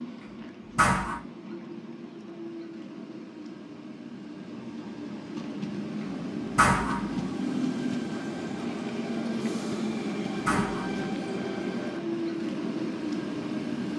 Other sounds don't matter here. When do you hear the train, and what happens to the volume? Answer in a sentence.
The train can be heard from 0.0 to 13.9 s, getting louder.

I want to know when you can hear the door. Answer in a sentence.
The door can be heard from 0.8 to 1.2 s, from 6.5 to 7.2 s and from 10.4 to 11.1 s.